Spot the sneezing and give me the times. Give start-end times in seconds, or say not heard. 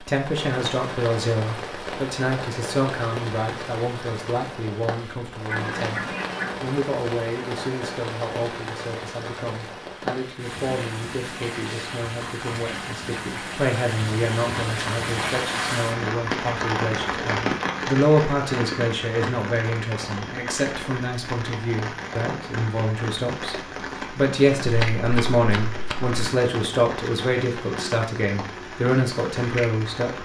5.5-6.6.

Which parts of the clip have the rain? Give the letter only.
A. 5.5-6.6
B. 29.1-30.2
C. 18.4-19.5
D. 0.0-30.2
D.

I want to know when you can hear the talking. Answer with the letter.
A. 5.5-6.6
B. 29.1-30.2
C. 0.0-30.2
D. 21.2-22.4
C.